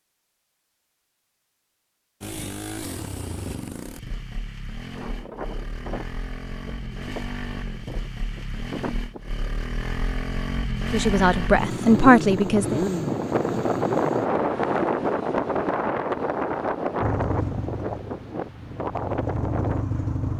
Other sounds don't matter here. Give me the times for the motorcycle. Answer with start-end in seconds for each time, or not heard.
2.2-14.3, 17.0-20.3.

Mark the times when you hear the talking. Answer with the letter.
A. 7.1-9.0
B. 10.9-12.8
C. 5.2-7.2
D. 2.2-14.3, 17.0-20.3
B.